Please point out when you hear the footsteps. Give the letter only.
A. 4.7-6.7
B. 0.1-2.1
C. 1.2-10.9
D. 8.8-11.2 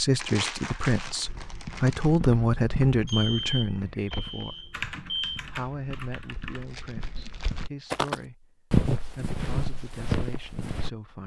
C.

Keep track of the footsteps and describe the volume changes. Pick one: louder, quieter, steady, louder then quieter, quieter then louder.
quieter then louder.